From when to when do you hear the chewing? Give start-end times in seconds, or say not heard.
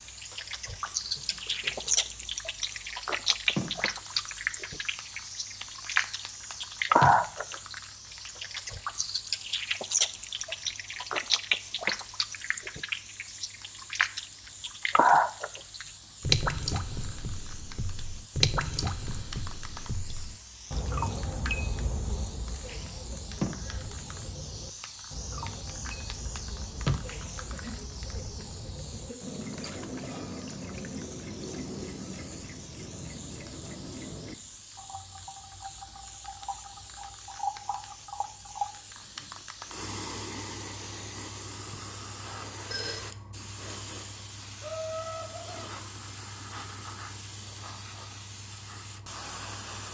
not heard.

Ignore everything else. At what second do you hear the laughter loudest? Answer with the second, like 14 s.
45 s.